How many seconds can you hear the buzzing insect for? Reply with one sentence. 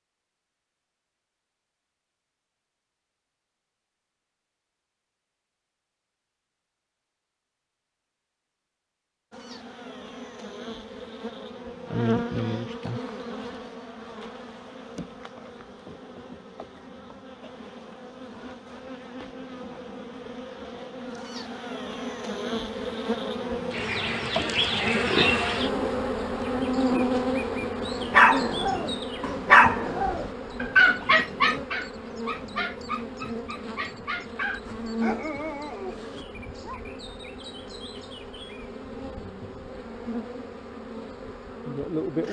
You can hear the buzzing insect for 33 seconds altogether.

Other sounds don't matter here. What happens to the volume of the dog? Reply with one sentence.
The loudness of the dog goes down.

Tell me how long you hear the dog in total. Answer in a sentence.
The dog can be heard for 9 seconds in total.